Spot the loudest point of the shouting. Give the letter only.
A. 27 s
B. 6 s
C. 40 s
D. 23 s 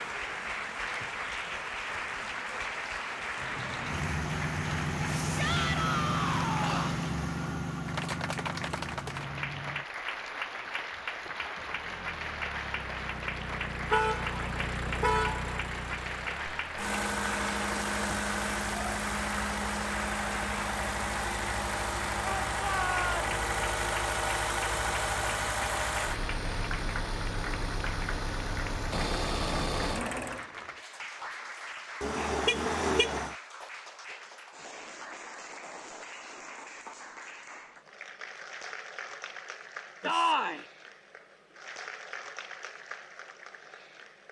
C.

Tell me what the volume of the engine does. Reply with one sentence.
The volume of the engine goes down, then up.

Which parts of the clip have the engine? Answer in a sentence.
You can hear the engine from 3.4 to 30.4 s.